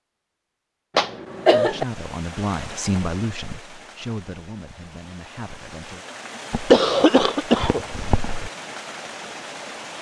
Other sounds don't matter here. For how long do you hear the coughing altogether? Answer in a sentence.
The coughing can be heard for 3 seconds in total.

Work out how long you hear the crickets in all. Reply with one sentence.
You can't hear the crickets here.